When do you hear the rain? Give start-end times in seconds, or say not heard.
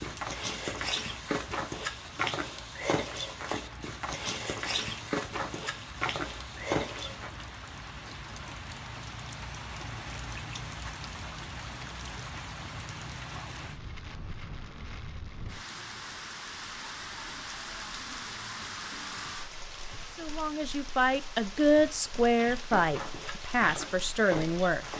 0.0-24.9.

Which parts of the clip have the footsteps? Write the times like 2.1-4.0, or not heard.
0.0-7.3, 22.4-24.9.